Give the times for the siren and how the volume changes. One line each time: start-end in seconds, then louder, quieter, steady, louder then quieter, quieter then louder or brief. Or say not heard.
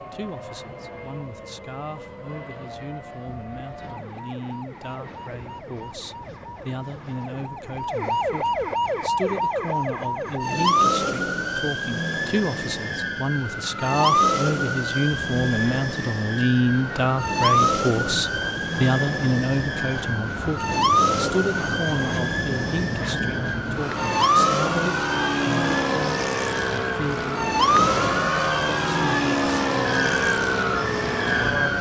0.0-31.7 louder.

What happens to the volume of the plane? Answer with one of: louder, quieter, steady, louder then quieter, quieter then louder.
louder.